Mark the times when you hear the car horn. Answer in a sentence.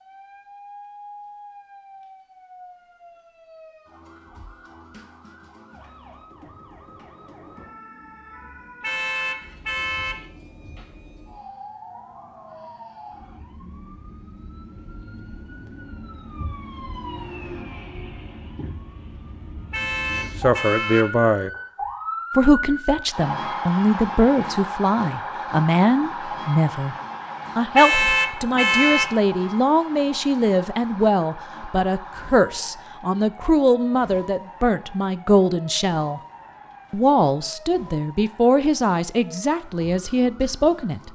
The car horn can be heard from 8.8 to 10.2 s, from 19.7 to 21.1 s and from 27.8 to 29.2 s.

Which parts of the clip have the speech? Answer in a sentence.
You can hear the speech from 20.4 to 21.5 s, from 22.4 to 26.9 s, from 27.6 to 36.2 s and from 36.9 to 41.0 s.